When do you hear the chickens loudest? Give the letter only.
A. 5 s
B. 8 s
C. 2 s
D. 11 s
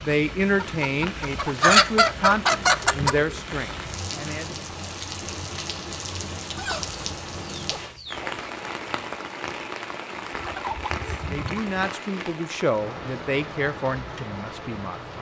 C.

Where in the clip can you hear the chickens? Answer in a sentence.
You can hear the chickens from 0.6 to 3.1 s, from 6.5 to 8.3 s and from 10.3 to 11.9 s.